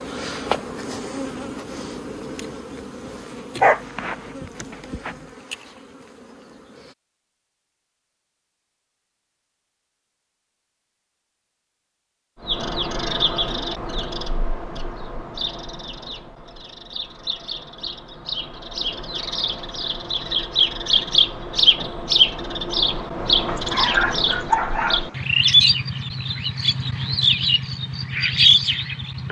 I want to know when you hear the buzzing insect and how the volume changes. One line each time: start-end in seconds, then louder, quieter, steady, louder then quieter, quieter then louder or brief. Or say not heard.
0.0-7.0 quieter.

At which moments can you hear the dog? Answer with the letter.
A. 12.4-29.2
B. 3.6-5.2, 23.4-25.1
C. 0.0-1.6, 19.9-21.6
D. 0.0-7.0
B.